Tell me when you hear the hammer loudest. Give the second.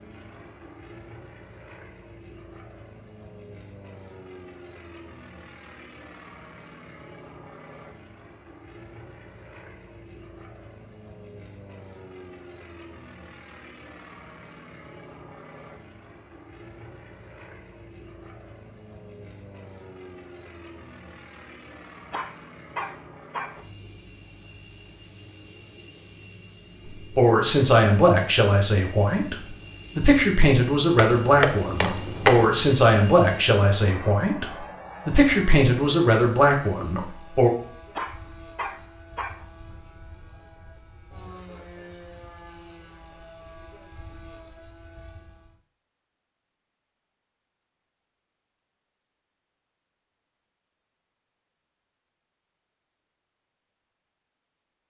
32 s.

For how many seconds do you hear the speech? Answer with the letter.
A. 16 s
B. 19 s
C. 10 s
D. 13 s
C.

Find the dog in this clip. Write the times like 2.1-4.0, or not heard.
22.1-23.6, 38.0-39.5.